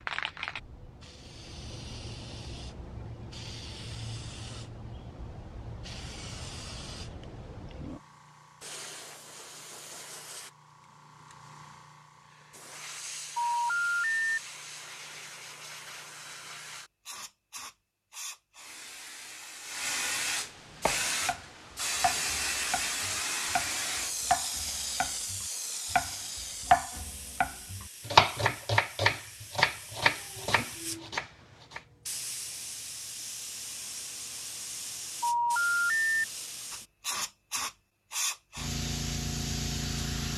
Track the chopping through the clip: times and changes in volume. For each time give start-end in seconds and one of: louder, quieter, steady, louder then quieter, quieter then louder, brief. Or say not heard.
20.8-31.8 louder then quieter.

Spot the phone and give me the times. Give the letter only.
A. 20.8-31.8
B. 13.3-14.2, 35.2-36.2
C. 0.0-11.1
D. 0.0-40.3
B.